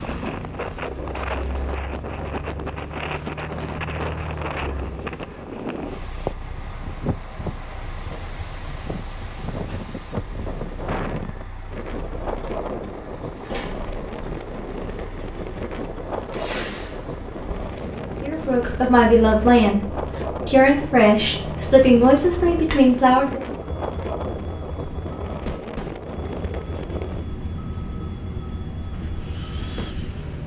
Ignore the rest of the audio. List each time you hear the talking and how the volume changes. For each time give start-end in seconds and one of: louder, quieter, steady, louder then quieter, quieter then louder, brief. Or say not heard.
18.2-23.4 steady.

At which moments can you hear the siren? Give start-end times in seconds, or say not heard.
not heard.